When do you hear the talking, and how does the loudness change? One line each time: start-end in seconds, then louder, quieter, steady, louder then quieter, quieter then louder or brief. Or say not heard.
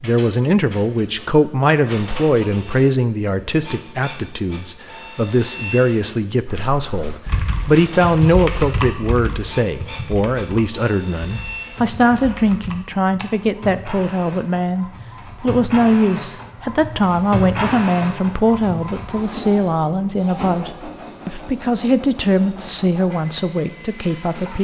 0.0-24.5 steady.